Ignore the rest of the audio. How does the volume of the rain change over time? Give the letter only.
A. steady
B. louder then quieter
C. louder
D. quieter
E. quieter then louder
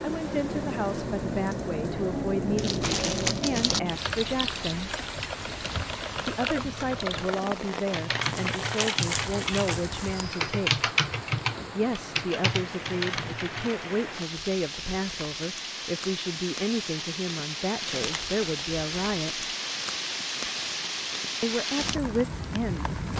E.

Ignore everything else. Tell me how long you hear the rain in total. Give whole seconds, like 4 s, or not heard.
23 s.